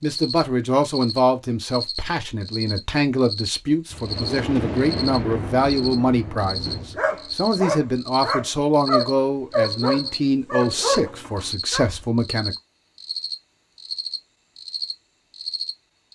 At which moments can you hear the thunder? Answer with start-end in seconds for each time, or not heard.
3.9-7.0.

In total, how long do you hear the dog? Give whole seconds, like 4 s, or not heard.
5 s.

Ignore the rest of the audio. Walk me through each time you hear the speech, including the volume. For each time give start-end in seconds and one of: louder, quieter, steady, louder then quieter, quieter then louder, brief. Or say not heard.
0.0-12.6 steady.